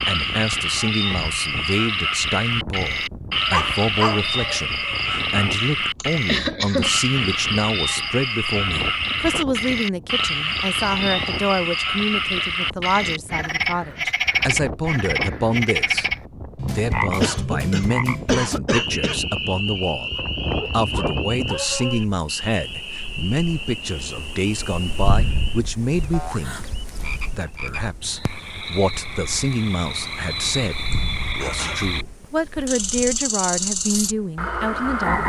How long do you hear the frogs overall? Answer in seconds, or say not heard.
35 s.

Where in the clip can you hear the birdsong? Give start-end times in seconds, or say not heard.
not heard.